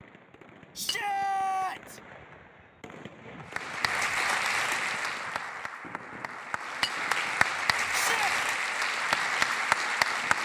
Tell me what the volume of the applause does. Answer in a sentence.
The loudness of the applause goes down, then up.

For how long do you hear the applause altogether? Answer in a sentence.
You can hear the applause for 7 seconds altogether.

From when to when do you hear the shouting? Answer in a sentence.
You can hear the shouting from 0.8 to 2.0 s and from 7.9 to 8.3 s.